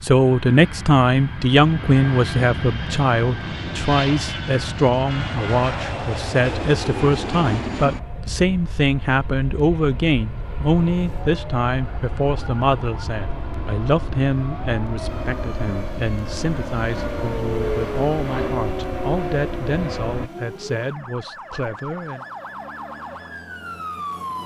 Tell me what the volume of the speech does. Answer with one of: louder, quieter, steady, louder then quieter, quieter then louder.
quieter.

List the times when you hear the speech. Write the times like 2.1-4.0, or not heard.
0.0-22.2.